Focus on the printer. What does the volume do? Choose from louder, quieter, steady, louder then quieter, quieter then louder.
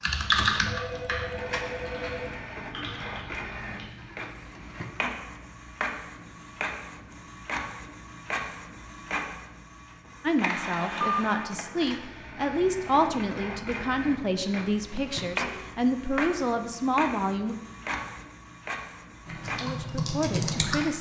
steady.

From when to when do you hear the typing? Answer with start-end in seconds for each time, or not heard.
0.0-4.0, 19.2-20.9.